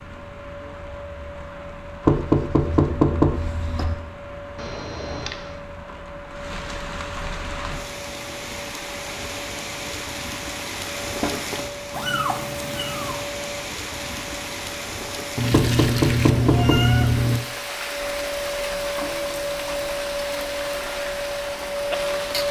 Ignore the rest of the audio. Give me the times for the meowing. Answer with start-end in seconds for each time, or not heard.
4.5-5.5, 11.9-13.3, 15.3-17.4.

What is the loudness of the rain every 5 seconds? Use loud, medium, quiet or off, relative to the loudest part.
medium, loud, loud, loud, loud.